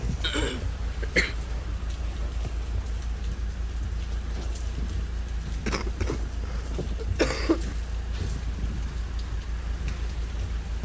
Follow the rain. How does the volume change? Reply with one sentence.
The loudness of the rain stays about the same.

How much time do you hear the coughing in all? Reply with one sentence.
You can hear the coughing for 3 seconds altogether.